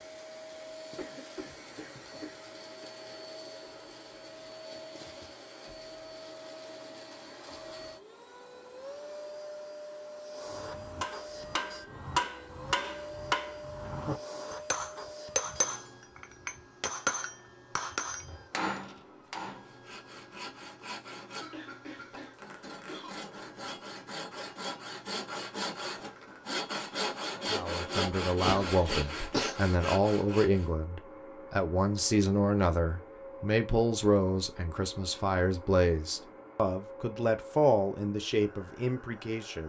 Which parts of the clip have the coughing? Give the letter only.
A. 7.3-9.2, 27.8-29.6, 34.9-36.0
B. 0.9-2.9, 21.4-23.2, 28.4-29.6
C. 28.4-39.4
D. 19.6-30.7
B.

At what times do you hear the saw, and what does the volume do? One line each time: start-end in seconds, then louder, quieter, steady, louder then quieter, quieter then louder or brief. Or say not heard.
19.6-30.7 louder.